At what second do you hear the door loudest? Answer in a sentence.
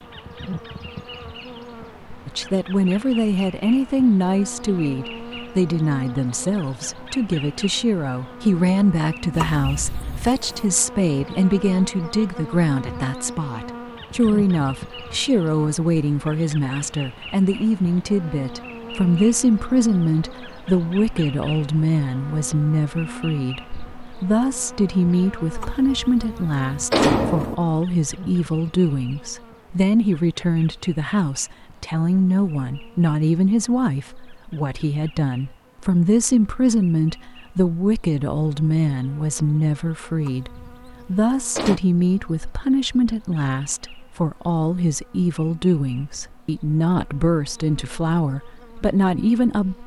The volume of the door peaks at 27 seconds.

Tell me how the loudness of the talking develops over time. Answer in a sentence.
The volume of the talking stays about the same.